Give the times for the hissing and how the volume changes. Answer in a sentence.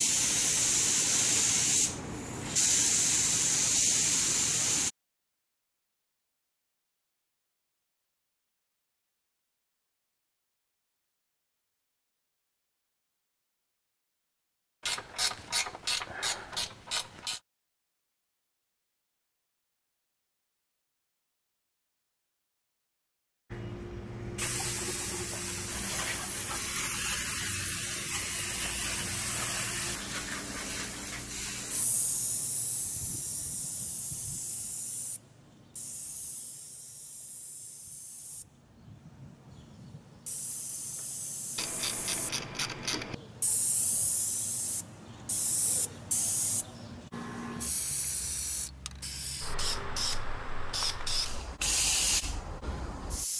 The hissing can be heard from 0.0 to 4.9 s, at a steady volume; and from 23.5 to 53.3 s, getting quieter then louder.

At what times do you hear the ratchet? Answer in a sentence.
The ratchet can be heard from 14.8 to 17.4 s and from 41.5 to 43.1 s.